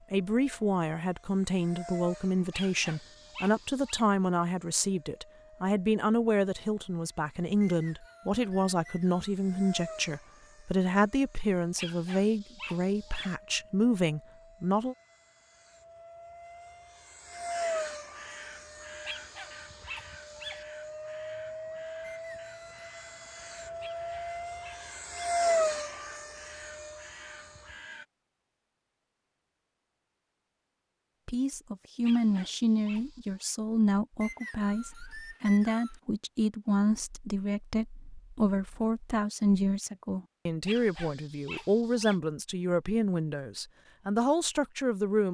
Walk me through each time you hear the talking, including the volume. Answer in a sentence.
You can hear the talking from 0.1 to 14.9 s, at a steady volume; and from 31.2 to 45.2 s, at a steady volume.